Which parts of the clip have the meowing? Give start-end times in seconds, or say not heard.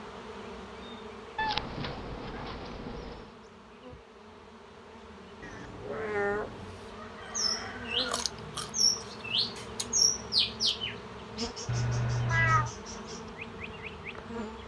1.4-3.2, 5.4-6.8, 11.7-12.7.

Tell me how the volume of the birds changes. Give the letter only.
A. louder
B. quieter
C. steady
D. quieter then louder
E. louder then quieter
E.